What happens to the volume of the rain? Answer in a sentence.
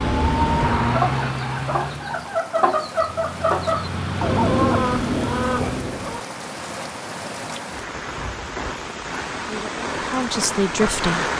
The volume of the rain goes up.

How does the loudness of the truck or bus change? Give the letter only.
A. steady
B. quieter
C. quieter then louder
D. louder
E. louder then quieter
C.